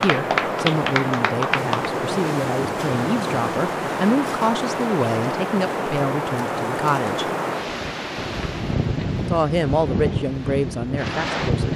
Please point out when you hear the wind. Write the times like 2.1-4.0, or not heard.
0.0-11.7.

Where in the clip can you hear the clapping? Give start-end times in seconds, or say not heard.
0.0-1.9.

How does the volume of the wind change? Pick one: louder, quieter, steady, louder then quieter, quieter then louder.
steady.